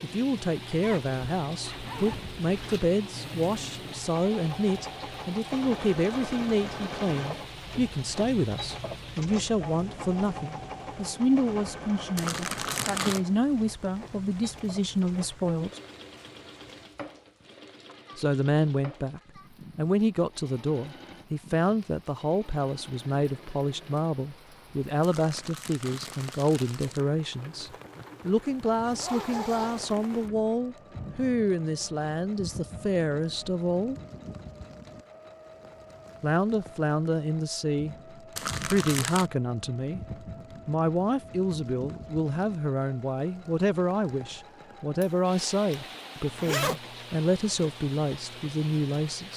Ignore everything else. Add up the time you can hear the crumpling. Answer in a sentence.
The crumpling can be heard for 4 seconds in total.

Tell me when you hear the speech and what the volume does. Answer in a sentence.
The speech can be heard from 0.0 to 15.8 s, at a steady volume; from 18.1 to 34.0 s, at a steady volume; briefly from 36.2 to 38.0 s; and from 38.6 to 49.3 s, at a steady volume.